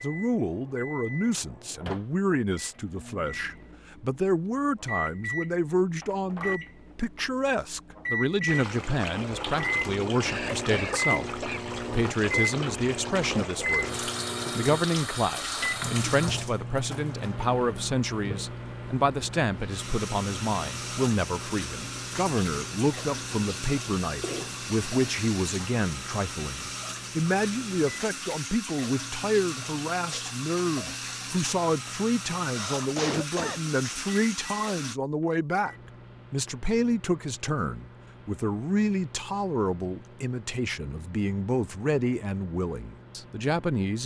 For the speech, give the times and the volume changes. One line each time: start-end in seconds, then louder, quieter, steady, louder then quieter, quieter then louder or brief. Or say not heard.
0.0-44.0 steady.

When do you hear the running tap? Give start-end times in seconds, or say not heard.
8.4-35.0.